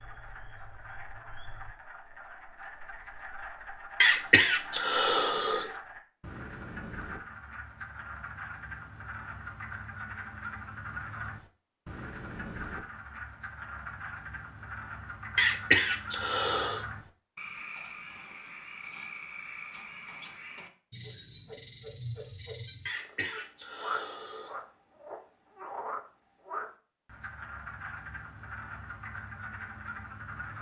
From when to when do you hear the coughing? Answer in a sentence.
You can hear the coughing from 4.0 to 5.7 s, from 15.3 to 16.8 s and from 22.9 to 24.6 s.